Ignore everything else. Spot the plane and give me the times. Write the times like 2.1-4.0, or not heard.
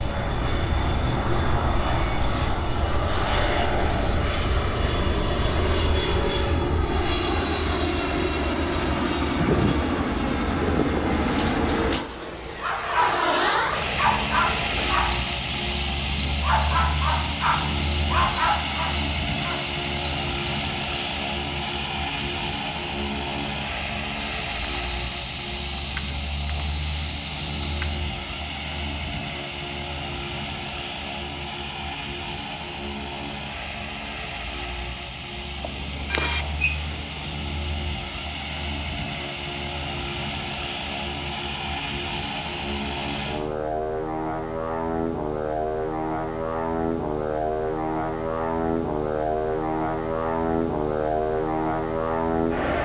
0.0-52.8.